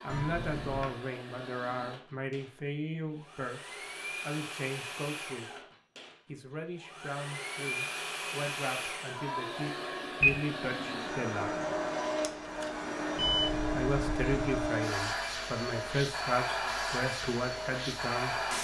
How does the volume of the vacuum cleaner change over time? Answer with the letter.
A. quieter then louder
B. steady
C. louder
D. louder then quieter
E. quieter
C.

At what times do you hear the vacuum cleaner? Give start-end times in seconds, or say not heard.
0.0-18.6.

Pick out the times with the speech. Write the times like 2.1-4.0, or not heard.
0.0-5.5, 6.2-11.5, 13.6-18.6.